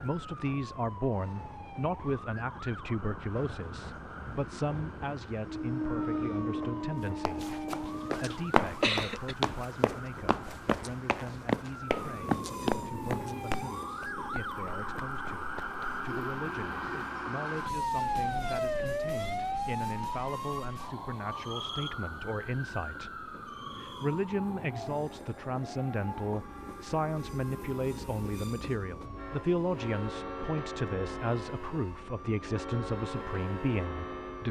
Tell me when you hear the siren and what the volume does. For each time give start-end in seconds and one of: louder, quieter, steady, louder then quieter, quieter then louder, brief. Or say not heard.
0.0-34.4 louder then quieter.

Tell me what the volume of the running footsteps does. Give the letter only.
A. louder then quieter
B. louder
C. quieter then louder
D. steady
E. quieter
E.